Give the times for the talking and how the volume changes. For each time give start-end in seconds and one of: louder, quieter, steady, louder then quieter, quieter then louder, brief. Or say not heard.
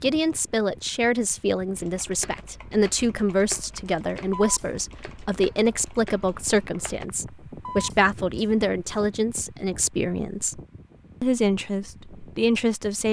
0.0-10.6 steady
11.2-13.0 brief.